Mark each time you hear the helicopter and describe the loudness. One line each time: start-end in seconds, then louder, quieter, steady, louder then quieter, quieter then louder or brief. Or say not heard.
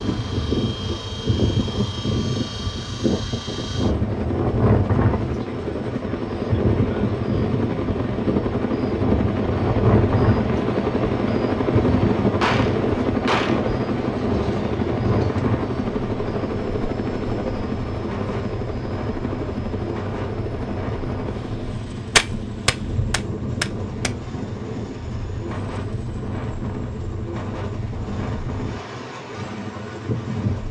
0.0-30.6 louder then quieter.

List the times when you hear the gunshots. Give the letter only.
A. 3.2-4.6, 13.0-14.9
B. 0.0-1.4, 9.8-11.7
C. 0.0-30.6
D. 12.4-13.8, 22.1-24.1
D.